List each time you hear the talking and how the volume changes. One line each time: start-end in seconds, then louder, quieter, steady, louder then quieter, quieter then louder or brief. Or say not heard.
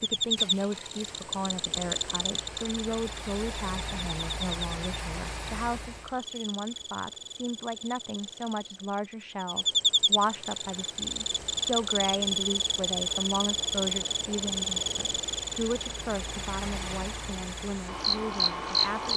0.0-19.1 steady.